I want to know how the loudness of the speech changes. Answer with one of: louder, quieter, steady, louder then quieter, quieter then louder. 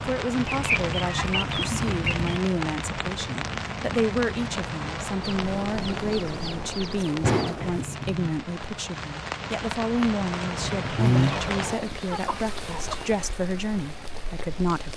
steady.